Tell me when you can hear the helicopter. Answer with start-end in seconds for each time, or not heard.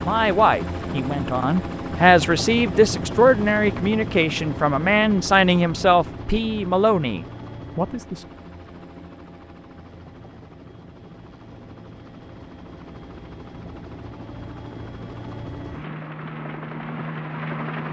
0.0-17.8.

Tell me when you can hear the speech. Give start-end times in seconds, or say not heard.
0.0-8.2.